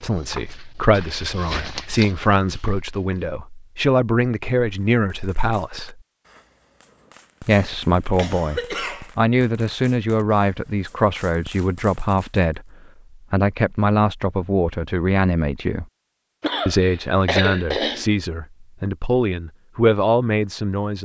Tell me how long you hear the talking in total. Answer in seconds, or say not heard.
19 s.